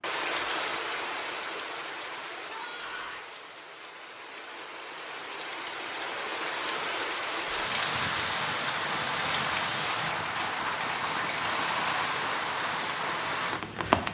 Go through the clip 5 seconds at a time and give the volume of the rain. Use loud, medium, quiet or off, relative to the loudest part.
medium, loud, loud.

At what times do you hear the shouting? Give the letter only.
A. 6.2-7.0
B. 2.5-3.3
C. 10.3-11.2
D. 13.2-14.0
B.